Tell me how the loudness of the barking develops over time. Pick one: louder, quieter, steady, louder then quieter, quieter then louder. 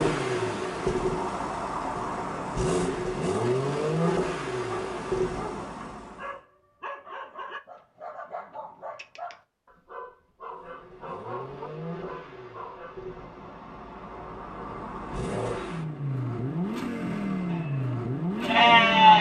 steady.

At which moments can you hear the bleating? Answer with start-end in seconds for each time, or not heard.
17.4-19.1.